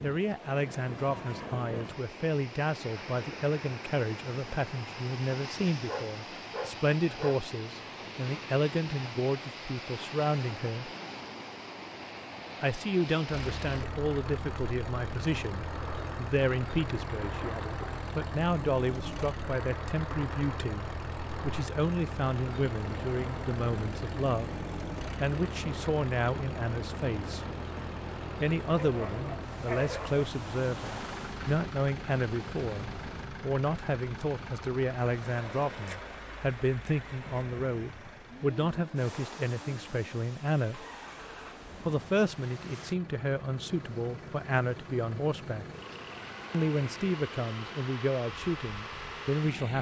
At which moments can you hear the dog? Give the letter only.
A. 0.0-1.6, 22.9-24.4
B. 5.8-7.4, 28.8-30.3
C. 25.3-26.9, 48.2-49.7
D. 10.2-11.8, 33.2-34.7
B.